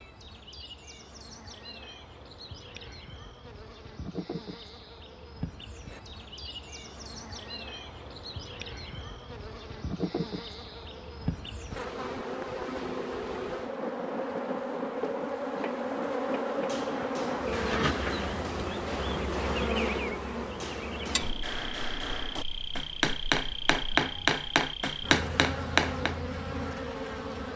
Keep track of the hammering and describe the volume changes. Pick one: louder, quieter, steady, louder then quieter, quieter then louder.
louder.